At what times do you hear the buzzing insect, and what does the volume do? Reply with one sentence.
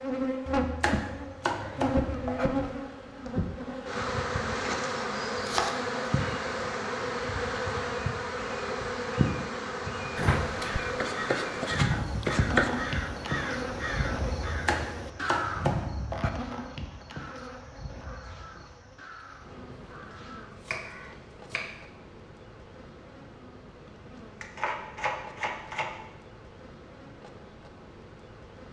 The buzzing insect can be heard from 0.0 to 28.6 s, getting quieter.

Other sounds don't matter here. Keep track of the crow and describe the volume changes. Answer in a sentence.
The loudness of the crow goes down.